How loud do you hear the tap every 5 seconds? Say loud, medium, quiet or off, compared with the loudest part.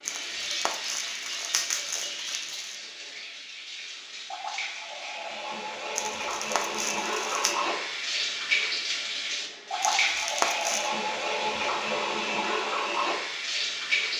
medium, loud, loud.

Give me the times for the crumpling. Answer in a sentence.
You can hear the crumpling from 0.1 to 2.8 s, from 6.0 to 7.5 s and from 9.8 to 10.9 s.